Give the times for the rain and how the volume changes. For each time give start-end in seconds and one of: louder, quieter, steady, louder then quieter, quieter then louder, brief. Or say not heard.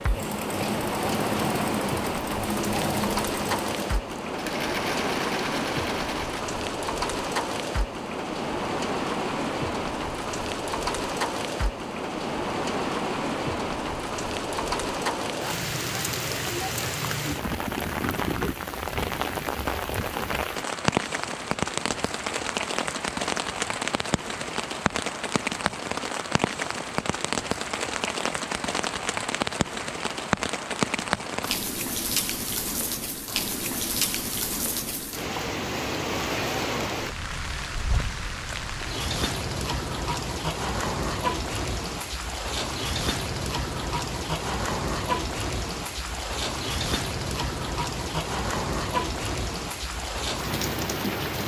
0.0-51.4 steady.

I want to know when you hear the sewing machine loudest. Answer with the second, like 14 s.
3 s.